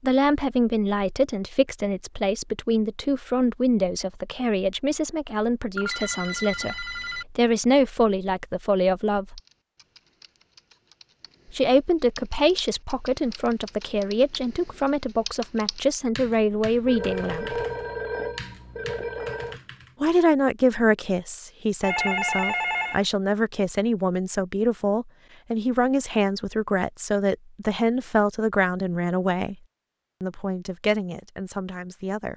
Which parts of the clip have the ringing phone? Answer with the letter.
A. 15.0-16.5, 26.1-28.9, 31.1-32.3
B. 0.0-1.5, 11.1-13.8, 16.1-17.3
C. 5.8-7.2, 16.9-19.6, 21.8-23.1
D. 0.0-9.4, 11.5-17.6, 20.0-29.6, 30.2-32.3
C.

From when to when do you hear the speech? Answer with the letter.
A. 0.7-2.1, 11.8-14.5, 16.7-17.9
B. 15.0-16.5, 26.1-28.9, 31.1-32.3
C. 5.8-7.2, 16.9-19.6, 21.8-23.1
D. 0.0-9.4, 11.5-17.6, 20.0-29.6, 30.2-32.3
D.